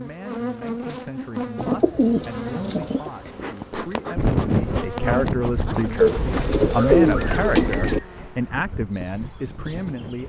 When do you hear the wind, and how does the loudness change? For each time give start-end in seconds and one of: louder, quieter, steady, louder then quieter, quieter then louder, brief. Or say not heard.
4.2-10.2 quieter.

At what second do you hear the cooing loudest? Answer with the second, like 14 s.
7 s.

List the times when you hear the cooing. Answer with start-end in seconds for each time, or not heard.
1.6-3.1, 6.0-8.0.